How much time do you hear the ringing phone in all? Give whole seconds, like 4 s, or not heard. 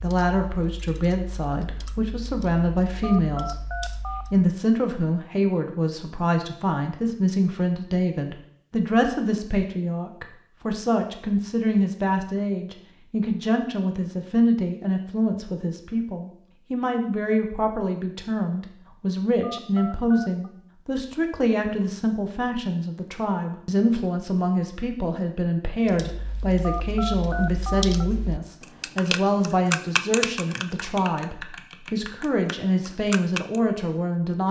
4 s.